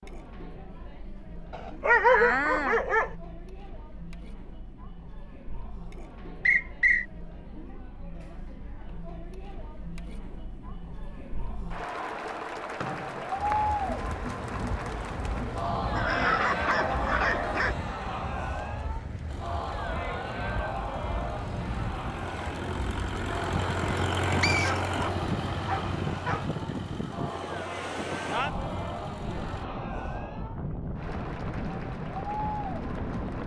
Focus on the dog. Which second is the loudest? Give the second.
2 s.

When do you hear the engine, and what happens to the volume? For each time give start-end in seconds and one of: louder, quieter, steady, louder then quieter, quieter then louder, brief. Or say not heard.
19.2-29.6 louder then quieter.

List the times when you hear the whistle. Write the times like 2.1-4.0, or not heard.
6.5-7.0, 12.8-13.7, 24.4-24.8.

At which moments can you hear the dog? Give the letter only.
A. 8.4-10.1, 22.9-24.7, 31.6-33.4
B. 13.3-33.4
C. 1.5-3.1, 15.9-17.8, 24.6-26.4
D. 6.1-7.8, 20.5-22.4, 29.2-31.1
C.